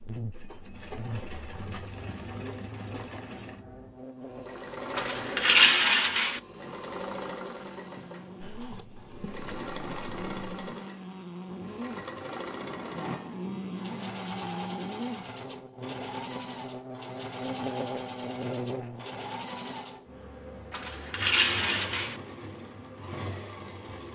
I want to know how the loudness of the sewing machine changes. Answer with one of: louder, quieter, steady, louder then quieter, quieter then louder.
steady.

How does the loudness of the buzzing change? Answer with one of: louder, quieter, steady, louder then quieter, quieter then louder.
louder.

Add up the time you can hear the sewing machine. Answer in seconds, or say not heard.
24 s.